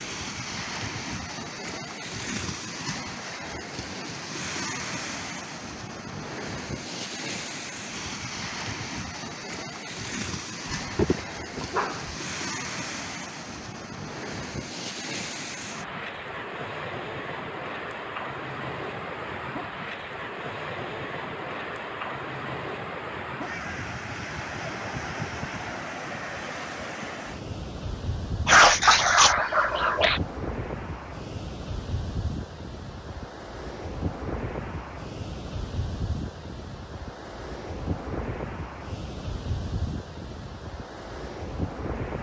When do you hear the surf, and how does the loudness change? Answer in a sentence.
The surf can be heard from 0.0 to 42.1 s, at a steady volume.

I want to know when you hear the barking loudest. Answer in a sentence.
The loudest moment of the barking is at 29 seconds.